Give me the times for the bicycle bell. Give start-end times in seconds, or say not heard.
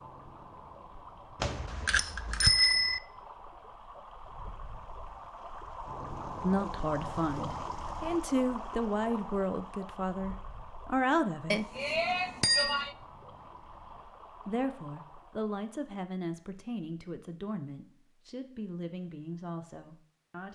1.4-3.0, 11.5-12.9.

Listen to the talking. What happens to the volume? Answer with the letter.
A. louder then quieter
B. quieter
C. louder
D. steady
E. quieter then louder
B.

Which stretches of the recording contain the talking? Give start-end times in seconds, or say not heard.
6.4-11.7, 14.4-20.5.